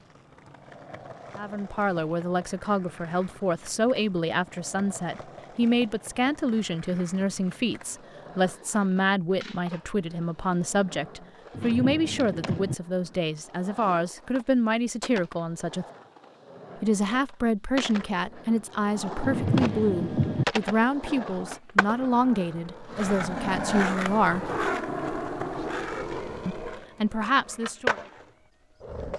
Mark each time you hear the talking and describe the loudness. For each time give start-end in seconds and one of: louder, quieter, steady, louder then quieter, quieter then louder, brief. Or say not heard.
1.4-15.8 steady
16.8-24.5 steady
26.4-27.9 brief.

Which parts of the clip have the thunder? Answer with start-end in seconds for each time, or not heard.
11.5-12.8, 19.2-20.4.